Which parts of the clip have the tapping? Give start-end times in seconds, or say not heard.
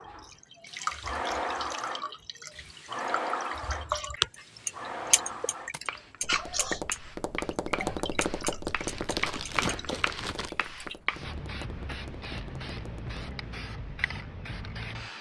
5.7-13.2.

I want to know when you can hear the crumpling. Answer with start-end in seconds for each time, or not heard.
8.7-10.5.